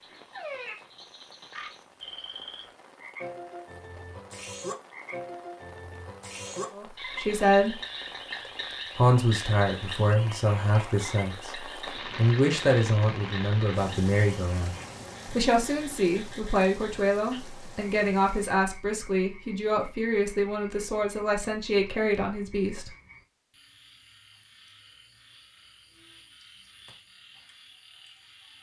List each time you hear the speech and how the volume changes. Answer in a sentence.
You can hear the speech briefly from 6.8 to 7.8 s; and from 8.9 to 22.9 s, at a steady volume.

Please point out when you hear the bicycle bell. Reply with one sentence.
The bicycle bell can't be heard in this clip.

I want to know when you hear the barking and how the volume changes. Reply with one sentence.
You can't hear the barking here.